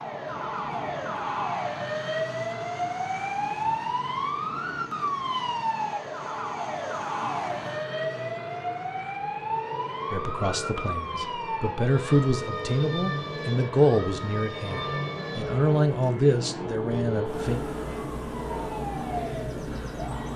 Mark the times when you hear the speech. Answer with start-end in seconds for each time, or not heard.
10.1-17.6.